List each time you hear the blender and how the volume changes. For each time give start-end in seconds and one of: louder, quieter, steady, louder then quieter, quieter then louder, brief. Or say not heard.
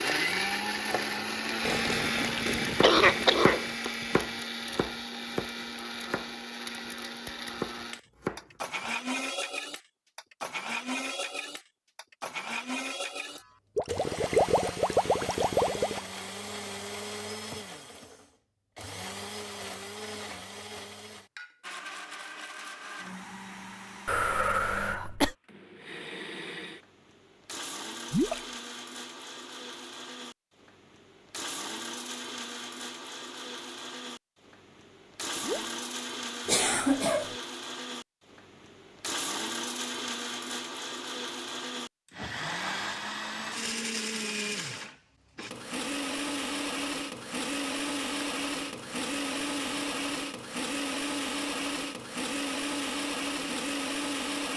0.0-54.5 quieter then louder.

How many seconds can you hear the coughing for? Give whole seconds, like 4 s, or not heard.
3 s.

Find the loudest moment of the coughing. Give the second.
3 s.